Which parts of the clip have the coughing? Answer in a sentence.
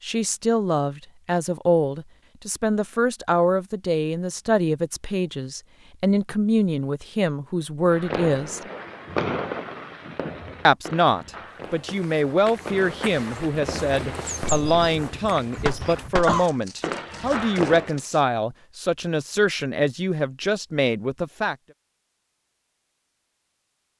The coughing can be heard from 15.6 to 16.5 s.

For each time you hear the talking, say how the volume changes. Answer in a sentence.
The talking can be heard from 0.0 to 8.6 s, at a steady volume; and from 10.7 to 21.6 s, at a steady volume.